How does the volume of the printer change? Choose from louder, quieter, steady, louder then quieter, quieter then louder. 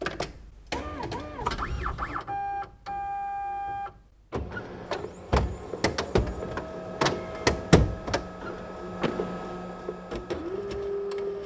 louder then quieter.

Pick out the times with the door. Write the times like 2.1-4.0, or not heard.
1.4-2.1, 9.0-9.7.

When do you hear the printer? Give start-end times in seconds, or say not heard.
0.0-11.4.